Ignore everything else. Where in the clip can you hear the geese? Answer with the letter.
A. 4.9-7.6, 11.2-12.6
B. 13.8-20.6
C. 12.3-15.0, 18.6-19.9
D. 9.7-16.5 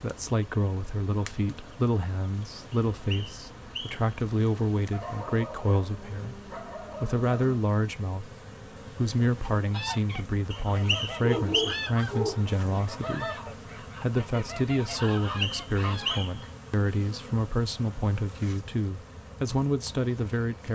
D.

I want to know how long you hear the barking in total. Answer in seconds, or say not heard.
4 s.